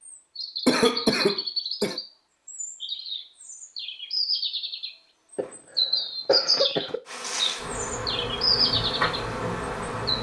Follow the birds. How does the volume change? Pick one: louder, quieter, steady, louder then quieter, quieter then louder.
quieter then louder.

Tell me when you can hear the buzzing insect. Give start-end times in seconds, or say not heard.
7.0-10.1.